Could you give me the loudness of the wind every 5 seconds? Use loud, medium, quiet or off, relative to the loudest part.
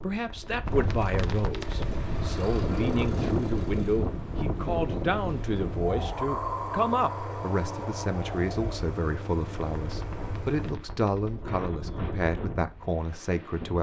loud, loud, medium.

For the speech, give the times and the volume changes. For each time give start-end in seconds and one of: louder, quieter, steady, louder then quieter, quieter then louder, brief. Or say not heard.
0.0-13.7 steady.